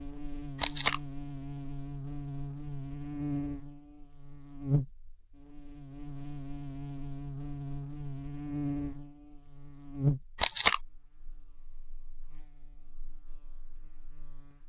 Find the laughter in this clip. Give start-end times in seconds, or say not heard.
not heard.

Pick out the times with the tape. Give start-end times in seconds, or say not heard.
0.6-1.0, 10.3-10.8.